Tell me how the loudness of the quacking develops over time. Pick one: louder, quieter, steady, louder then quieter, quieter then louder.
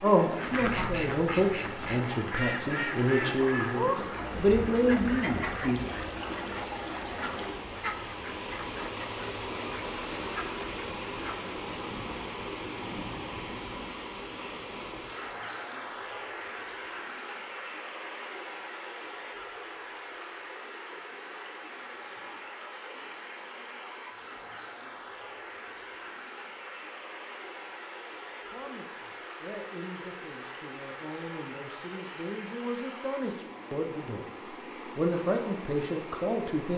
quieter.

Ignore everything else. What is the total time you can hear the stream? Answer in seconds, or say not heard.
37 s.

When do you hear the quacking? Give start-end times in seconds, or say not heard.
0.3-11.5.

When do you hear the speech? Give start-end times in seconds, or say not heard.
0.0-5.8, 28.5-34.2, 35.0-36.7.